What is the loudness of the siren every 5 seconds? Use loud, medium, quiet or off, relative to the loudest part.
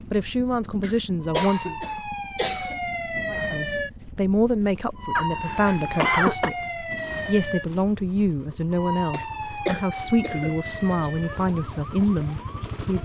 loud, loud, medium.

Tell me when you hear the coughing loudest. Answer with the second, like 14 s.
6 s.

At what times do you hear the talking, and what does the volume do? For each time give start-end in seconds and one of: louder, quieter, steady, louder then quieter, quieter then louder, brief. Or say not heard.
0.1-1.8 brief
3.3-13.0 steady.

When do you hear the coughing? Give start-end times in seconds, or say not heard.
0.8-2.8, 5.2-6.5, 9.1-10.6.